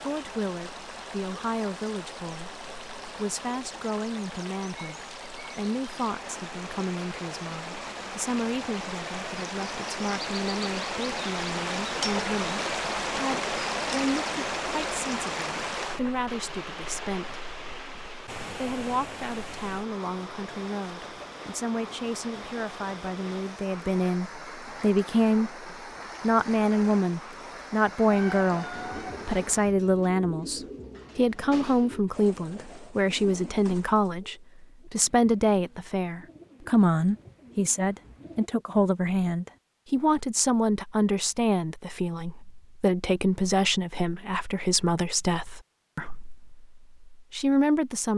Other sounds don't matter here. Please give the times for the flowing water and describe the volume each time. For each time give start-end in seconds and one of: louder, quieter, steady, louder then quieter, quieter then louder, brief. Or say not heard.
0.0-29.8 louder then quieter.